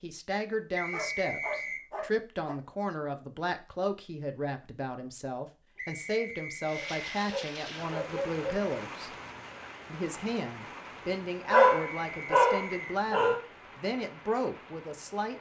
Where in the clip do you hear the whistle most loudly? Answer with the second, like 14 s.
1 s.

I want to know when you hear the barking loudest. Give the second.
12 s.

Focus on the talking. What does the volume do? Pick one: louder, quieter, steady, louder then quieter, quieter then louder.
steady.